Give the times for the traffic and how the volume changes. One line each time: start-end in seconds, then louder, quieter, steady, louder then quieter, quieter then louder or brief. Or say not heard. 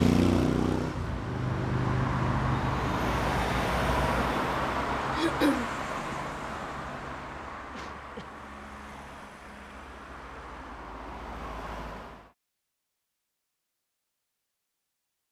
0.0-12.3 quieter.